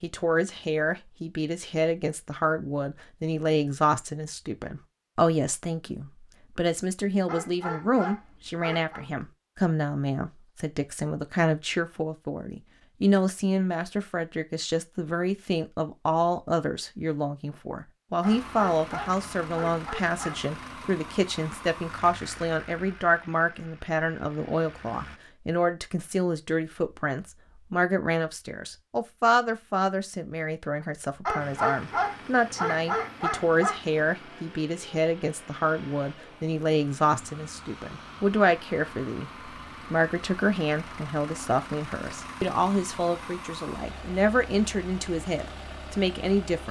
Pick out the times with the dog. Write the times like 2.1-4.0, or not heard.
7.2-9.1, 18.2-20.4, 31.2-33.8.